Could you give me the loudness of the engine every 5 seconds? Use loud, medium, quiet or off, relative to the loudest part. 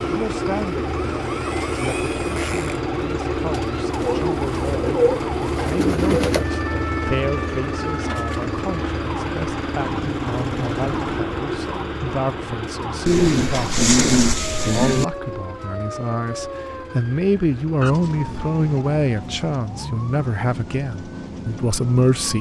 loud, loud, loud, quiet, off.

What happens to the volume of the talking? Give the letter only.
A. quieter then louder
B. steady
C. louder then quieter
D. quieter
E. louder
E.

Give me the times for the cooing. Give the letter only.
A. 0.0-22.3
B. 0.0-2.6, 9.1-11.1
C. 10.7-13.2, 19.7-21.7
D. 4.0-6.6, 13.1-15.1
D.